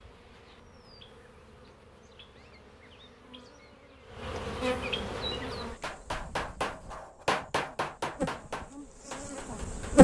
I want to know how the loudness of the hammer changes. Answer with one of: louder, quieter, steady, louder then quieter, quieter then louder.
quieter.